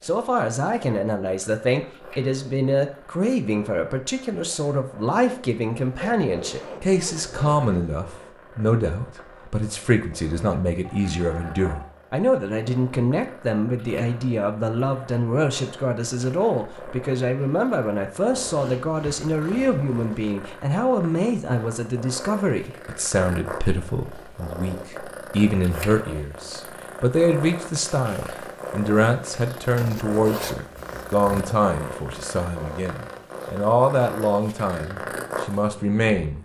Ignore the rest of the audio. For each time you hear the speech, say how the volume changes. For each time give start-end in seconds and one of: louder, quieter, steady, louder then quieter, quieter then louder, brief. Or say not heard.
0.0-36.3 steady.